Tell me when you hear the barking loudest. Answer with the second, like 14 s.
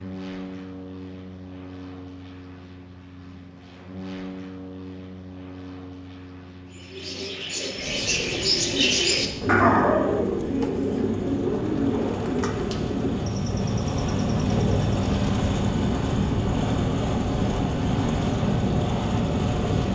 10 s.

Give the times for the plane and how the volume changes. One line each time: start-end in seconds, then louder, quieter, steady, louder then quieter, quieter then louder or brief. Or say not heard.
0.0-19.9 louder.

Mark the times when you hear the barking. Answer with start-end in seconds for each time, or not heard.
9.4-11.0.